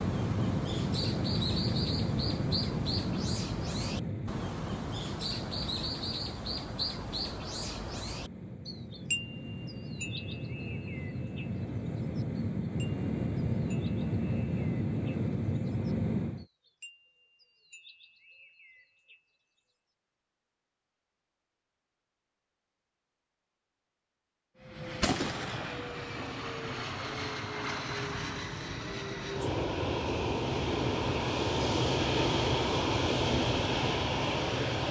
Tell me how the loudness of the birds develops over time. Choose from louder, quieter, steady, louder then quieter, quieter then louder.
quieter.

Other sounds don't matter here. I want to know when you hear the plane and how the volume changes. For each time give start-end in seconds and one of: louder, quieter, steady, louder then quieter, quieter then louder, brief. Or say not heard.
0.0-16.4 quieter then louder
24.6-34.8 louder.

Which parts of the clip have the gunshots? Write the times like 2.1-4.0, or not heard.
25.0-25.9.